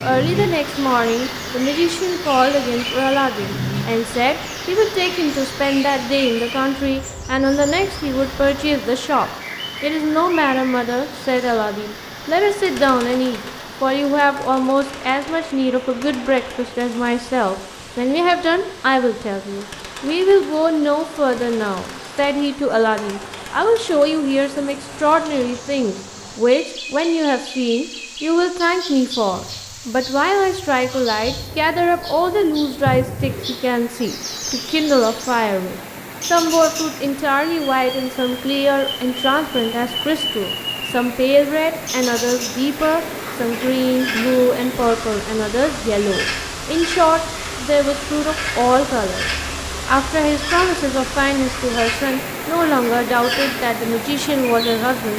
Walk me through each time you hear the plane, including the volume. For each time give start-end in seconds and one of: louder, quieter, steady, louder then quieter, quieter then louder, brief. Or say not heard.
not heard.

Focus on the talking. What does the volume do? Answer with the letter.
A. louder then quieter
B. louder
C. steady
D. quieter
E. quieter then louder
C.